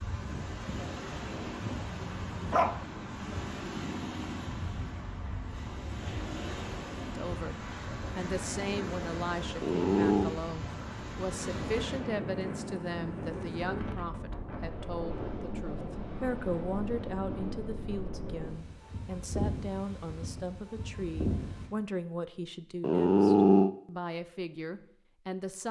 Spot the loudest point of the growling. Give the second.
23 s.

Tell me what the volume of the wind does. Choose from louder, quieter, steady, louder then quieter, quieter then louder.
steady.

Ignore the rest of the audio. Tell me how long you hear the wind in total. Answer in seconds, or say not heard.
22 s.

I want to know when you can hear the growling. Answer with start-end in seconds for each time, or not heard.
1.6-2.8, 9.6-10.3, 22.8-23.7.